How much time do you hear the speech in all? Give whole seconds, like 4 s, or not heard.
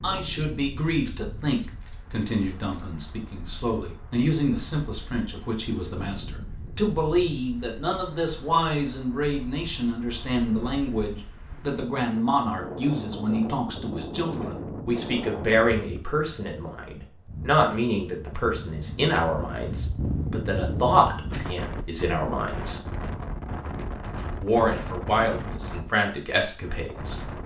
26 s.